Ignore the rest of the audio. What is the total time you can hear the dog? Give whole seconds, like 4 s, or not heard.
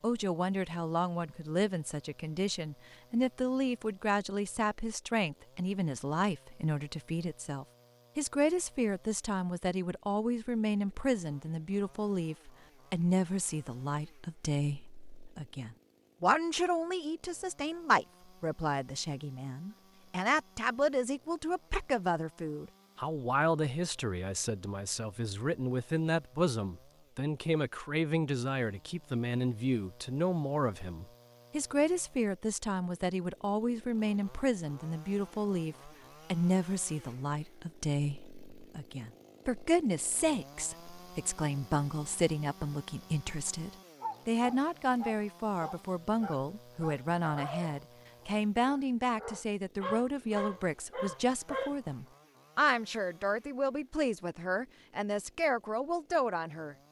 8 s.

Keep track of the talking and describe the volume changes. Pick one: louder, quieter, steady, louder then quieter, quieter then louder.
steady.